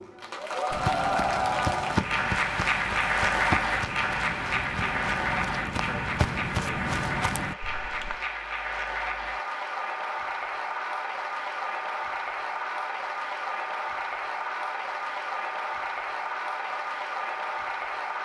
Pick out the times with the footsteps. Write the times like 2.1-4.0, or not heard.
0.7-8.2.